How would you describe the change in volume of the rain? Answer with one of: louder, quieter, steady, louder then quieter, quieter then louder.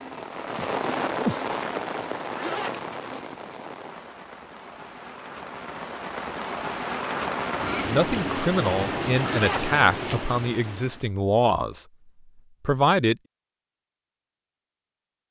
quieter then louder.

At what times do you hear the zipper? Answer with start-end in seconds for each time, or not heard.
2.2-3.2, 9.2-9.8.